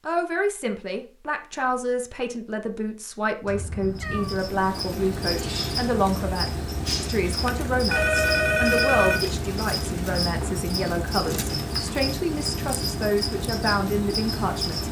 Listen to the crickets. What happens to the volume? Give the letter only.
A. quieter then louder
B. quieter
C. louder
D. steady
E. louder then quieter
D.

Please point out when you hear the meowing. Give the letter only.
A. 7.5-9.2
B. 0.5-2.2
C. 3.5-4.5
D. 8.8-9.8
C.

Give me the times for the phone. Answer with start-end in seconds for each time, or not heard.
7.5-9.2.